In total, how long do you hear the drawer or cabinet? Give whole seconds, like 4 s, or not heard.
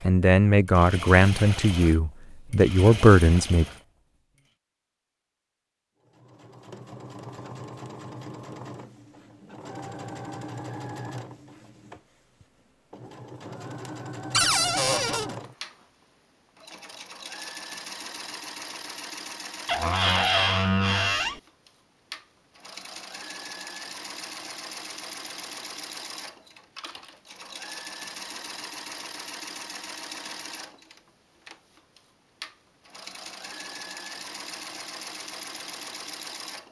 3 s.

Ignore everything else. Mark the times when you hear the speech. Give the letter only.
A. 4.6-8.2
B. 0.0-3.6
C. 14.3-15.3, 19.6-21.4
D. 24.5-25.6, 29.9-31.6
B.